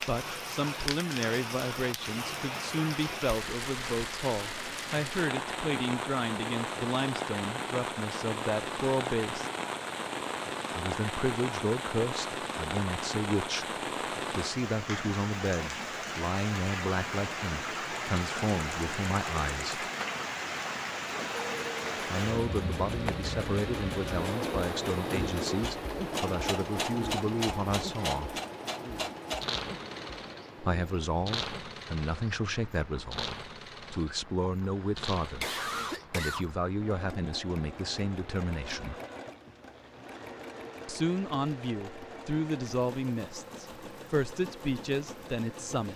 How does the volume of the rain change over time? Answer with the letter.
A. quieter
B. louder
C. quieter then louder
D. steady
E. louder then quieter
A.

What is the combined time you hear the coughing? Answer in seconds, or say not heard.
2 s.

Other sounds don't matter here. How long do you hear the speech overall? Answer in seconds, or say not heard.
38 s.